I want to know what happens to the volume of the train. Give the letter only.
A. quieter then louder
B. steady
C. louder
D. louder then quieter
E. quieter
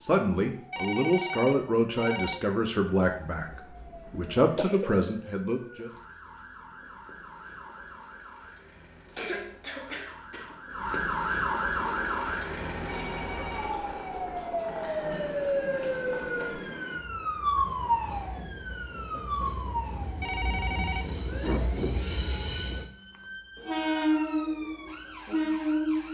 C.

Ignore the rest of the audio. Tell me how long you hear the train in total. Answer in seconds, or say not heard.
14 s.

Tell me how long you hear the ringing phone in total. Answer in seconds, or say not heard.
4 s.